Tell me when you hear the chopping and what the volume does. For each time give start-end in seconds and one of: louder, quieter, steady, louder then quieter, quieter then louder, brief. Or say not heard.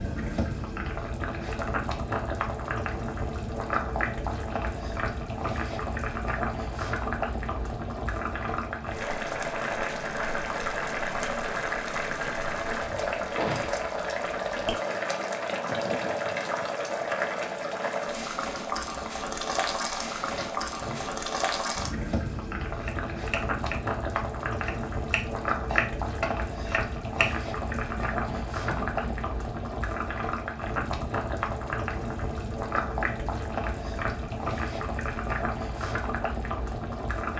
22.8-29.1 louder then quieter.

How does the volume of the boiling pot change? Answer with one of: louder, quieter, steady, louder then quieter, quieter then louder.
steady.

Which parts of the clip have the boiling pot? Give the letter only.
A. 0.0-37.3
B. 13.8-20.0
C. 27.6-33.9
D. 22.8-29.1
A.